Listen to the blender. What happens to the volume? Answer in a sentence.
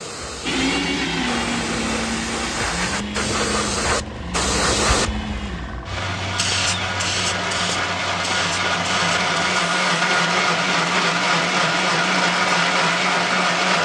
The loudness of the blender goes down, then up.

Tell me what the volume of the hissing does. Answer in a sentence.
The volume of the hissing goes up, then down.